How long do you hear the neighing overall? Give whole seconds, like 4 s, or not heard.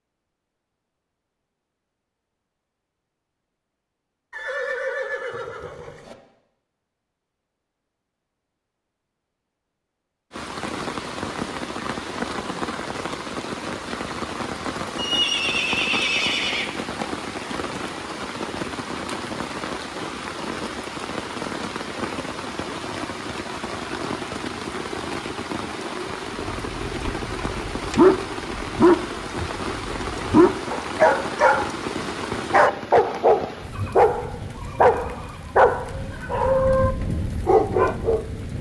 6 s.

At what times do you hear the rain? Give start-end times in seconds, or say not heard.
10.3-38.5.